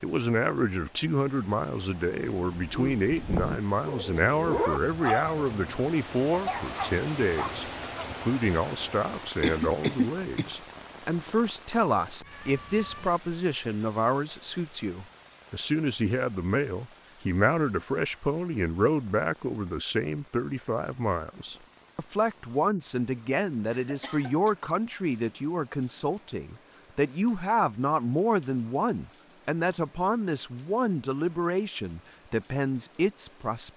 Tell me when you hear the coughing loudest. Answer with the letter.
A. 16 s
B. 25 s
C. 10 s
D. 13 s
C.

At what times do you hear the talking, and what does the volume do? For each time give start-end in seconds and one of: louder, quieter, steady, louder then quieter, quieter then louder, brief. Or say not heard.
0.0-33.7 steady.